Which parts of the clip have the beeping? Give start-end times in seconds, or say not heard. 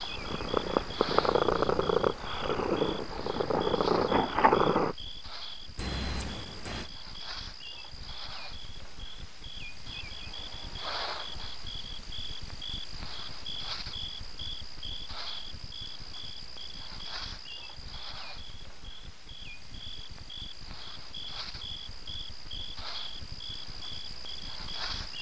5.8-6.9.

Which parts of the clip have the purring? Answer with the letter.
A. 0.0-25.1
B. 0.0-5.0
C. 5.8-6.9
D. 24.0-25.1
B.